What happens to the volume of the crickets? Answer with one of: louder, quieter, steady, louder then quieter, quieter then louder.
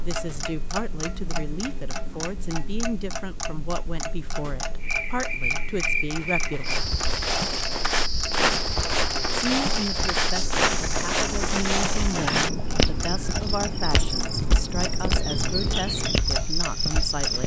steady.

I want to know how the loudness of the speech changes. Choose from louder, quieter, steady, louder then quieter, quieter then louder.
steady.